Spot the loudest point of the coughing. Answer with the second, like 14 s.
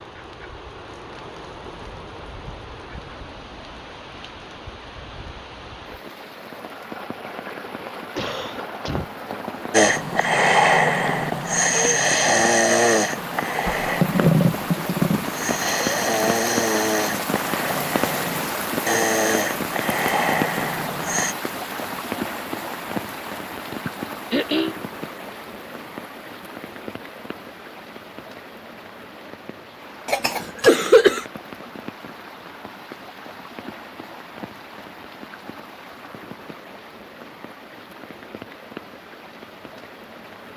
31 s.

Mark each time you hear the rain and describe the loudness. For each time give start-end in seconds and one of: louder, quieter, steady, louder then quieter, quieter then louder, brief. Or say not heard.
0.0-40.5 louder then quieter.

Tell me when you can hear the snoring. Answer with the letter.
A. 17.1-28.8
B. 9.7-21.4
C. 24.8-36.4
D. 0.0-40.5
B.